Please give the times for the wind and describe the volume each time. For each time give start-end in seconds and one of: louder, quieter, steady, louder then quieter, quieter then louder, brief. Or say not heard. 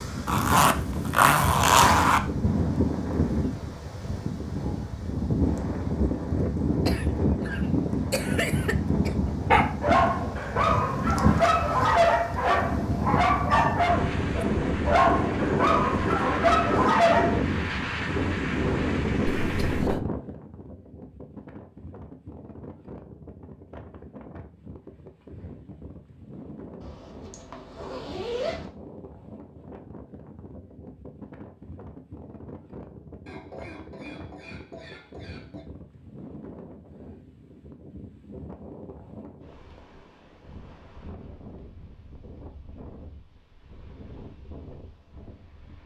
0.0-45.8 quieter.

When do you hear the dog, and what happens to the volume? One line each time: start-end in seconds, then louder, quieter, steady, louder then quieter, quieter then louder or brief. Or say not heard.
9.5-17.4 steady.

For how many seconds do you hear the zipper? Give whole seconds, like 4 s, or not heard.
4 s.